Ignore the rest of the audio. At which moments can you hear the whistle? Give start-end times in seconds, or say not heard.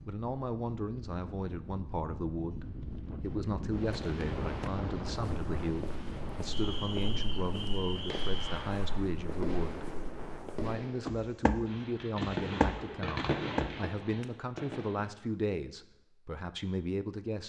6.5-8.6.